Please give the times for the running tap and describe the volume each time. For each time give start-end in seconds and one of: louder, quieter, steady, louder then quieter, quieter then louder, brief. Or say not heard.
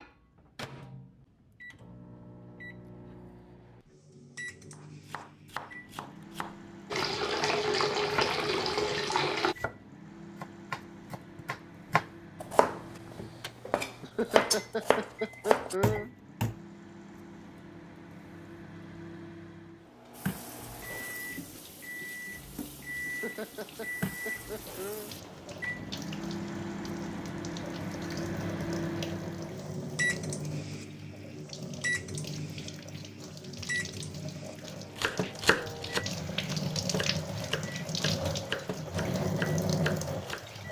6.9-9.6 brief
20.1-40.6 louder.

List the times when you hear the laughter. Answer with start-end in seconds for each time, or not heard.
14.0-16.1, 23.1-25.1.